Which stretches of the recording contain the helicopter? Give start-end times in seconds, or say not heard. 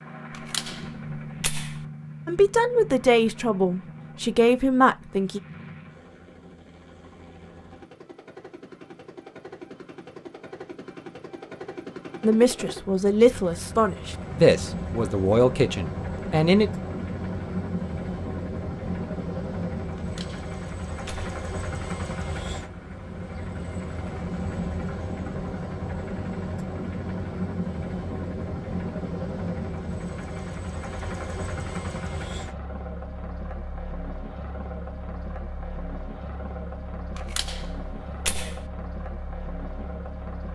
0.0-40.5.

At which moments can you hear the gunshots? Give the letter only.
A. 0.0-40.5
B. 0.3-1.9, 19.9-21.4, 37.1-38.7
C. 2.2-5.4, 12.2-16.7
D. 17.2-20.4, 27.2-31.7
B.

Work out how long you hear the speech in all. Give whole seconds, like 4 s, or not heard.
8 s.